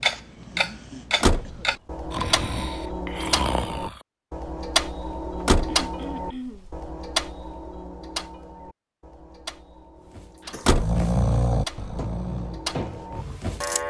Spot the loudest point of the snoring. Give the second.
11 s.